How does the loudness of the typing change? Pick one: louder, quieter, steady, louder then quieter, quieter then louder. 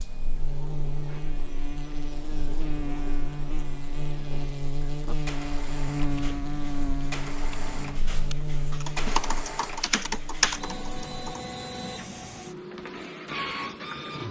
louder.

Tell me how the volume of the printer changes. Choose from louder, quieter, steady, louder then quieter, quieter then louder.
louder.